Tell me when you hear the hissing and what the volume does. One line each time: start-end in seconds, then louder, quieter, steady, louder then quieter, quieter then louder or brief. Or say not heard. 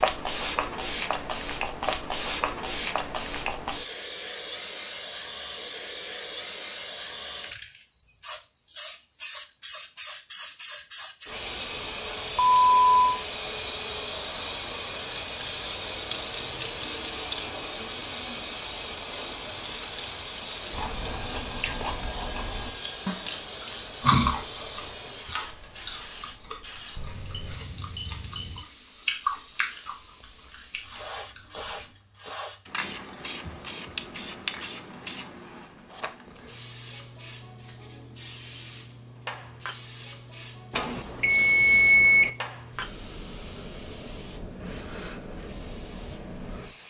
0.0-46.8 quieter.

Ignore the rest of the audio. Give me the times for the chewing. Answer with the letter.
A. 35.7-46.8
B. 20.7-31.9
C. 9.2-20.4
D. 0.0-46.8
B.